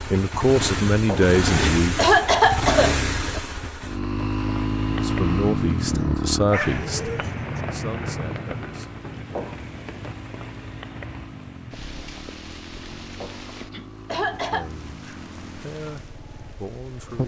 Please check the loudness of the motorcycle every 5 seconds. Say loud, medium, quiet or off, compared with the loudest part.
loud, loud, quiet, quiet.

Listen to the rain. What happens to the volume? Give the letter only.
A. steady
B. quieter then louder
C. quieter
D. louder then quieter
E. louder
C.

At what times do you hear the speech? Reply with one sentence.
You can hear the speech from 0.1 to 2.1 s, from 5.0 to 8.9 s and from 14.3 to 17.2 s.